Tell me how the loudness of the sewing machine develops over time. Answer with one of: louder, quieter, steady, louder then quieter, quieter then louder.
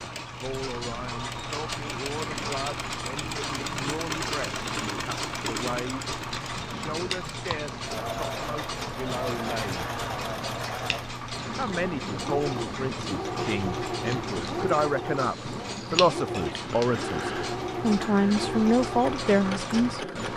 steady.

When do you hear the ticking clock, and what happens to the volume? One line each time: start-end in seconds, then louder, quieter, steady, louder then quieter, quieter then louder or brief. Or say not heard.
0.0-20.3 steady.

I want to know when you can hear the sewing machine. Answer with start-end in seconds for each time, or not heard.
0.0-20.3.